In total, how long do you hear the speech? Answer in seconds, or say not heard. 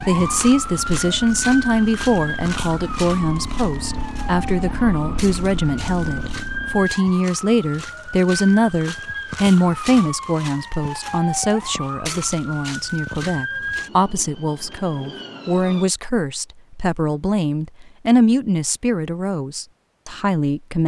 21 s.